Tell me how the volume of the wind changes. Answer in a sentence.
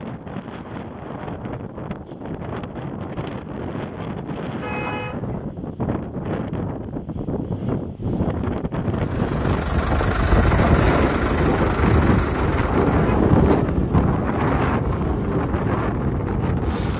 The volume of the wind goes up.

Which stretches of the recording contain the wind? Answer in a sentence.
You can hear the wind from 0.0 to 16.9 s.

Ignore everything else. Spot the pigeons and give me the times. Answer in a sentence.
You can't hear the pigeons here.